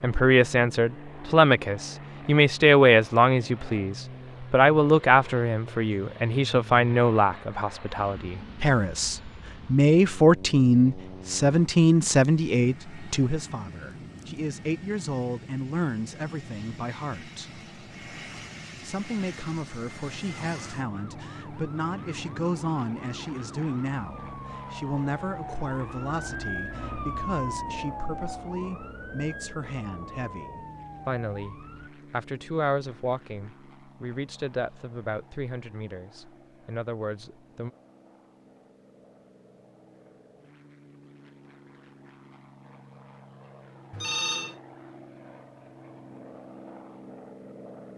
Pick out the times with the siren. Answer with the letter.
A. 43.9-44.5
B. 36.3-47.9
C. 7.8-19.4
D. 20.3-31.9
D.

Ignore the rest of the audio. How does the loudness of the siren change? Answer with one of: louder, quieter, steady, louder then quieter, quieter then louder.
louder then quieter.